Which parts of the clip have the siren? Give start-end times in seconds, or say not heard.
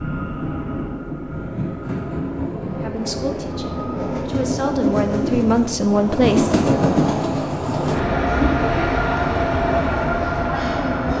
not heard.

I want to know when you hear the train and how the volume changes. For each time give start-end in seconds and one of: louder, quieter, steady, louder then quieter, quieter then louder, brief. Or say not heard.
0.0-11.1 louder.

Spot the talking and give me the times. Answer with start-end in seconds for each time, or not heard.
2.8-6.5.